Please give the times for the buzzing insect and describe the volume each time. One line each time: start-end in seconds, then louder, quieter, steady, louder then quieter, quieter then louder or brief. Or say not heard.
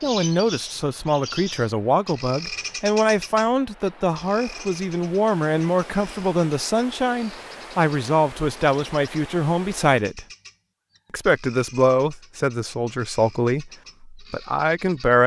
not heard.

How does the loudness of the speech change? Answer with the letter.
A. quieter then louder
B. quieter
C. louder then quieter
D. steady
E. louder
D.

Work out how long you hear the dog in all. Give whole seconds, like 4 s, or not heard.
not heard.